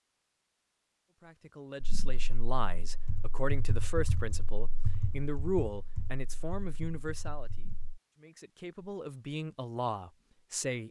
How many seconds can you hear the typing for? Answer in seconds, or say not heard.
6 s.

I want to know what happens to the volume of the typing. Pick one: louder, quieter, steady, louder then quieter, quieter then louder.
louder then quieter.